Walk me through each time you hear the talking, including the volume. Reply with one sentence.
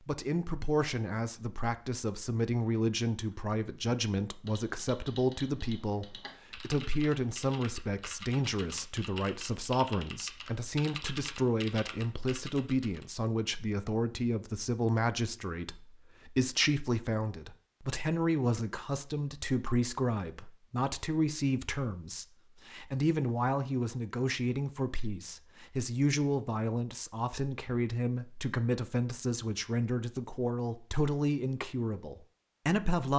You can hear the talking from 0.1 to 33.1 s, at a steady volume.